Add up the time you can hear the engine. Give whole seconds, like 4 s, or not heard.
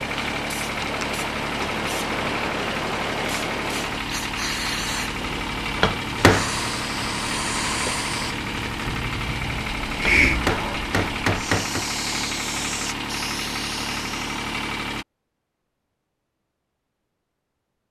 15 s.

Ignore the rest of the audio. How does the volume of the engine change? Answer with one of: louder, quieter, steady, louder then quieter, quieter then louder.
steady.